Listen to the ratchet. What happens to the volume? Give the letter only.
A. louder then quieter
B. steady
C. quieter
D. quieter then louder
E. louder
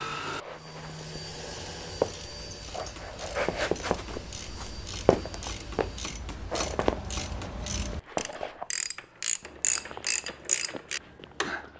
E.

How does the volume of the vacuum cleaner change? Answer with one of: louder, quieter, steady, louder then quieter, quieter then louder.
quieter.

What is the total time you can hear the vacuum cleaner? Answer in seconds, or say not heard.
6 s.